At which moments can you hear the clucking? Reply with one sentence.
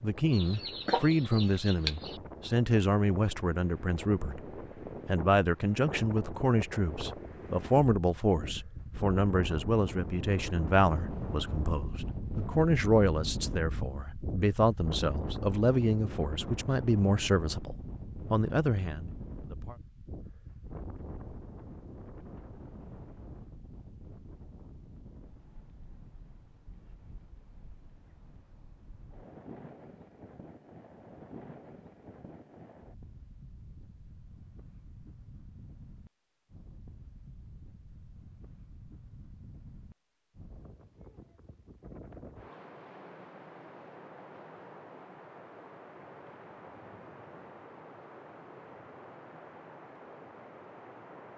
You can hear the clucking from 0.3 to 2.2 s.